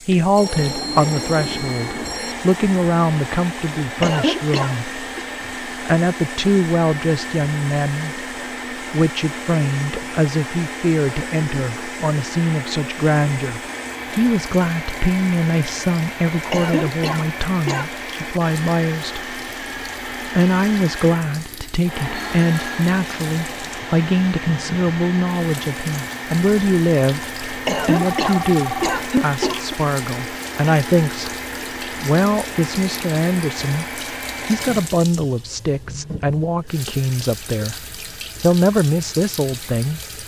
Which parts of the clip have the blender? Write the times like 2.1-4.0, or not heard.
0.1-35.0.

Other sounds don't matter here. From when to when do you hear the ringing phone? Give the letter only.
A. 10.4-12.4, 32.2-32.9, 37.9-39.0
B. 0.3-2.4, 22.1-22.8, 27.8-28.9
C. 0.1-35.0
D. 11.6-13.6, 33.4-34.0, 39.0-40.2
B.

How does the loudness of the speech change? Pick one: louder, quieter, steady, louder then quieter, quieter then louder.
steady.